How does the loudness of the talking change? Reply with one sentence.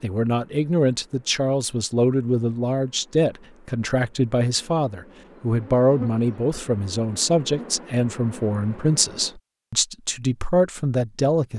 The loudness of the talking stays about the same.